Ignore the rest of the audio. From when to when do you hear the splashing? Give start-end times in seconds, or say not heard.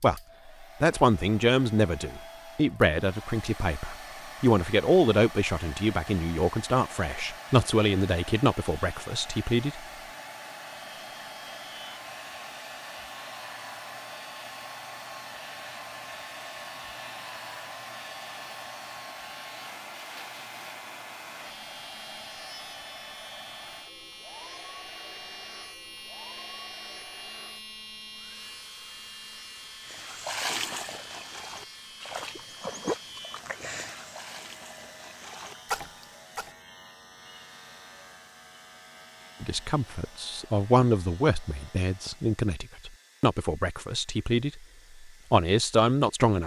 29.9-36.5.